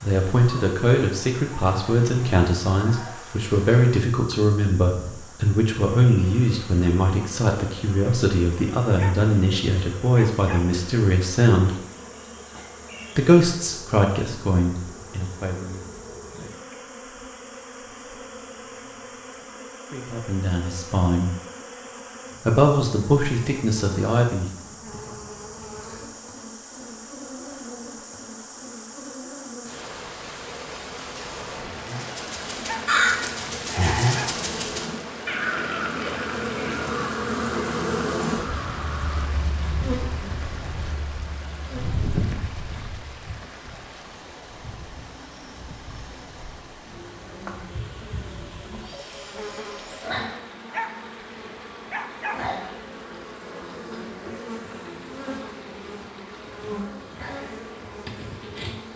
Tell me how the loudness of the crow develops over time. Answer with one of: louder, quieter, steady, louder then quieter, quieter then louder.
quieter.